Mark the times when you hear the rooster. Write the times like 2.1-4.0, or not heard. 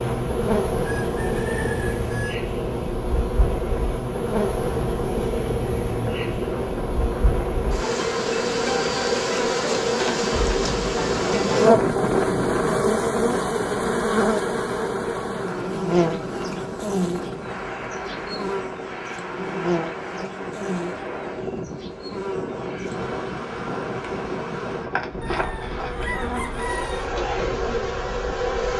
0.8-2.4, 25.2-27.1.